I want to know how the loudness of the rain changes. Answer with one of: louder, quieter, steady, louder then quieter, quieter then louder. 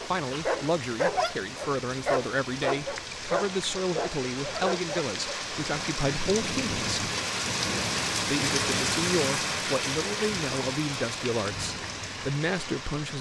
louder then quieter.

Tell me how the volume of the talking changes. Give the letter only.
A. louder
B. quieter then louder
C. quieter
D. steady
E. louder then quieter
D.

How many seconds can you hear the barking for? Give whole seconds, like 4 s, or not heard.
5 s.